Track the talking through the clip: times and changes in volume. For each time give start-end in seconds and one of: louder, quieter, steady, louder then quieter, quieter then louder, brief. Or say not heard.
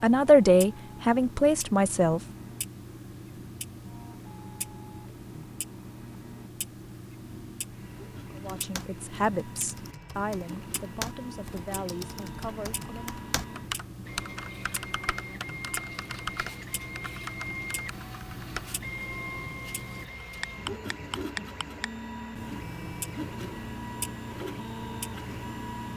0.0-2.2 brief
8.3-13.2 quieter.